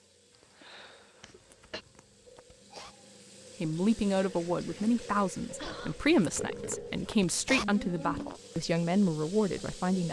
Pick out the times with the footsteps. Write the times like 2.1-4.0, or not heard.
not heard.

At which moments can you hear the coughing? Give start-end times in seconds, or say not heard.
0.6-1.8, 5.5-6.0.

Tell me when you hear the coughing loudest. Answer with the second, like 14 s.
6 s.